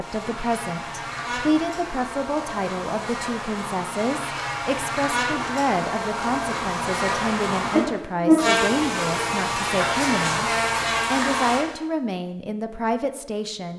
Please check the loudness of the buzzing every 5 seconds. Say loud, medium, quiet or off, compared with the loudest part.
medium, loud, loud.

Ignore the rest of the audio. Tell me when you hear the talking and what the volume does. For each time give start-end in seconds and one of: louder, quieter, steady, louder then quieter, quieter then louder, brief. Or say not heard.
0.0-13.7 steady.